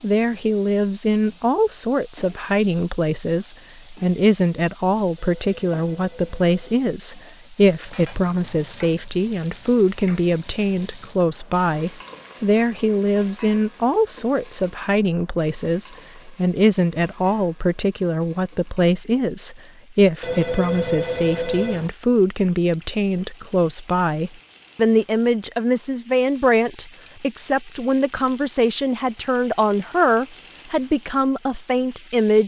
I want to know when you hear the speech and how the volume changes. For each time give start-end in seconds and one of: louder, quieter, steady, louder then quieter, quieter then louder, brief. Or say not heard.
0.0-32.4 steady.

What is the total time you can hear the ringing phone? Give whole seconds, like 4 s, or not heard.
3 s.